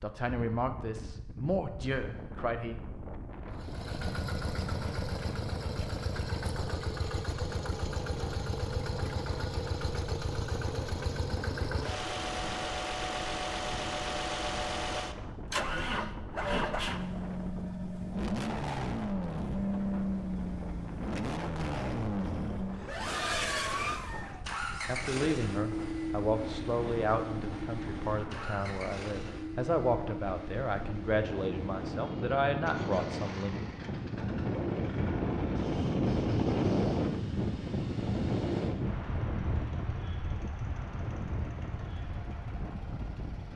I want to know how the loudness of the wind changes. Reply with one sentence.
The loudness of the wind goes up.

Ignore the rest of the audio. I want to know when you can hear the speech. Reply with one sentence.
The speech can be heard from 0.0 to 2.8 s and from 24.9 to 33.5 s.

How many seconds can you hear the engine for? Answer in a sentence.
The engine can be heard for 40 seconds in total.